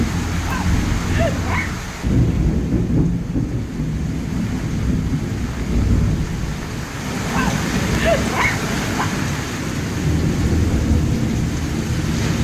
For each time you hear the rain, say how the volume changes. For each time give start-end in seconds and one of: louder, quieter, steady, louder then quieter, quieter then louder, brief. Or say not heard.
0.0-12.3 steady.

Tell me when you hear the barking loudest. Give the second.
8 s.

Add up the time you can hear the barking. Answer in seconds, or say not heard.
3 s.